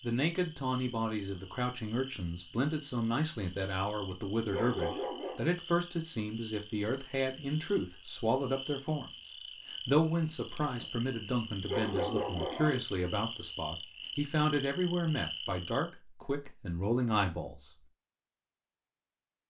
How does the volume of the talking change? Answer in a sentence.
The loudness of the talking stays about the same.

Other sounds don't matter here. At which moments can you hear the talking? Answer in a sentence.
You can hear the talking from 0.0 to 9.1 s and from 9.7 to 17.7 s.